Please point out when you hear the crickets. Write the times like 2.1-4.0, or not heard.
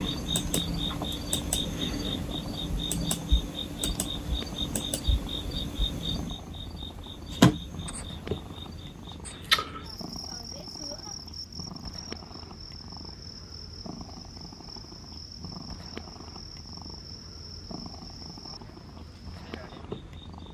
0.0-20.4.